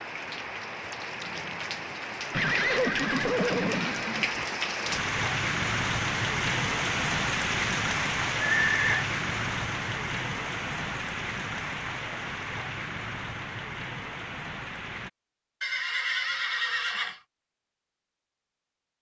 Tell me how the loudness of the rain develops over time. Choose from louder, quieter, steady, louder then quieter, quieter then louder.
louder then quieter.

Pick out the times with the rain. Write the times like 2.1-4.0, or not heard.
0.0-15.1.